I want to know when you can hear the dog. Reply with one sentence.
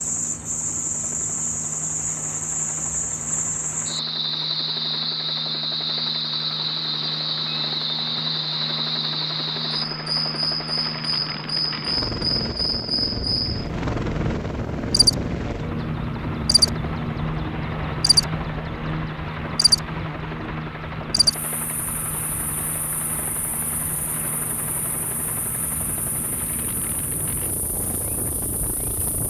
The dog can't be heard in this clip.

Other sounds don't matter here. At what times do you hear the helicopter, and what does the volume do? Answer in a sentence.
The helicopter can be heard from 0.0 to 29.2 s, getting louder then quieter.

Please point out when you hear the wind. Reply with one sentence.
You can hear the wind from 13.2 to 29.2 s.